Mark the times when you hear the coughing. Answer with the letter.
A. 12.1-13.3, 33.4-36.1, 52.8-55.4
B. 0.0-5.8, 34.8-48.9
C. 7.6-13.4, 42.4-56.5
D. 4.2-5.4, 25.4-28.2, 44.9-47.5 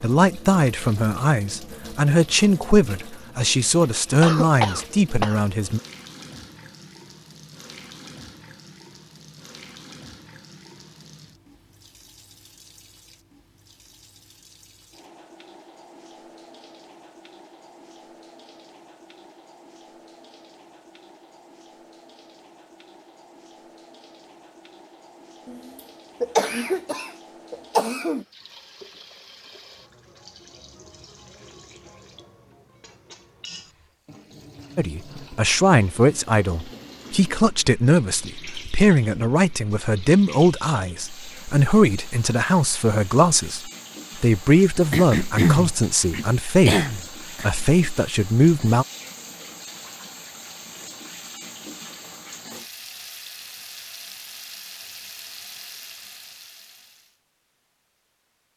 D.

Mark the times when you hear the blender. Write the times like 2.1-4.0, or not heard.
not heard.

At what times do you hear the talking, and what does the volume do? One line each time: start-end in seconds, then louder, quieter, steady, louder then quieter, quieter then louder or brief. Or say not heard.
0.0-5.8 steady
34.8-48.9 steady.